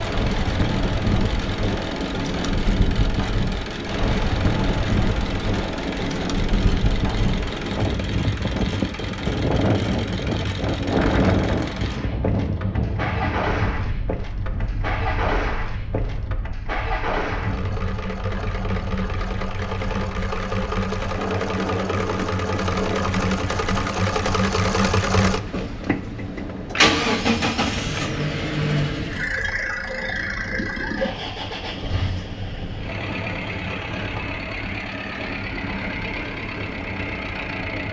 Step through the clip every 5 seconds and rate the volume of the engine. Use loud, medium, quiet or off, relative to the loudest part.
medium, medium, medium, medium, loud, loud, medium, medium.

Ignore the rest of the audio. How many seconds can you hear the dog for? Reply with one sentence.
You can't hear the dog here.